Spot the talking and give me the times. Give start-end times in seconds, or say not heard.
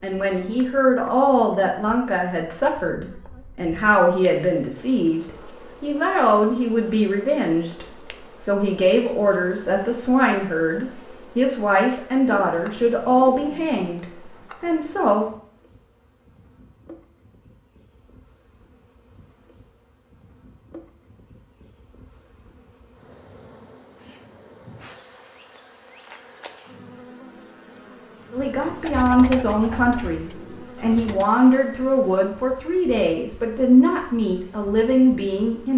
0.0-15.2, 28.3-35.7.